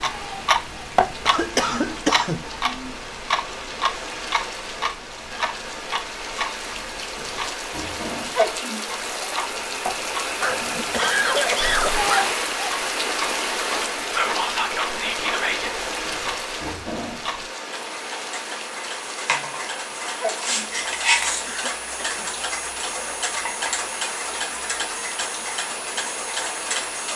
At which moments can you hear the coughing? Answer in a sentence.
The coughing can be heard from 1.2 to 2.5 s, from 10.4 to 12.3 s and from 21.4 to 22.3 s.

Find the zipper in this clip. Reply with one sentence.
The zipper can't be heard in this clip.